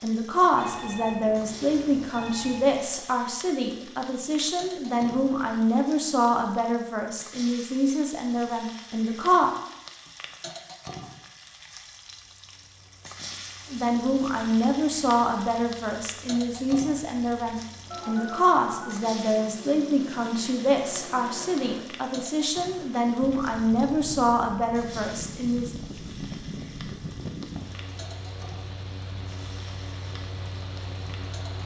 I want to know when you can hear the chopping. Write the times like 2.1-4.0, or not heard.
not heard.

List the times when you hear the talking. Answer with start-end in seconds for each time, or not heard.
0.0-9.5, 13.7-25.7.